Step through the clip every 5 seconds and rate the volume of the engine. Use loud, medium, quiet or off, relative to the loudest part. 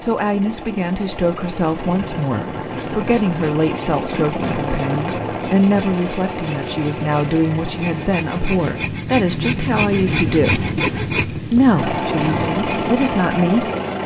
medium, medium, loud.